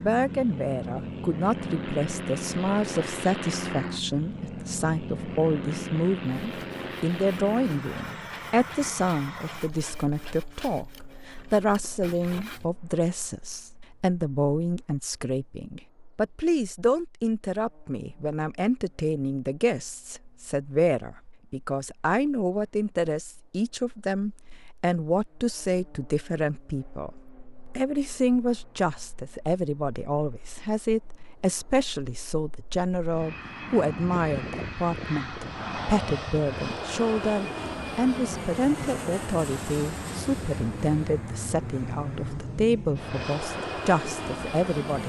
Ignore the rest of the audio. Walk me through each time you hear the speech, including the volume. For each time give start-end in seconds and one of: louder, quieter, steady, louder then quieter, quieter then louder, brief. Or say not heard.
0.0-27.1 steady
27.8-45.0 steady.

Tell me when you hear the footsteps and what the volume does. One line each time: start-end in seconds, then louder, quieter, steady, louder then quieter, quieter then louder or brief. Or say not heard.
not heard.